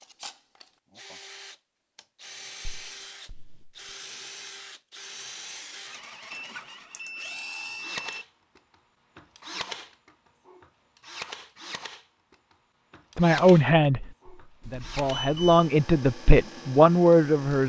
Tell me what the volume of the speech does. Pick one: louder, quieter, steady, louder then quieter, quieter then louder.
quieter then louder.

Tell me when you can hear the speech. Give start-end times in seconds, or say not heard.
13.2-17.6.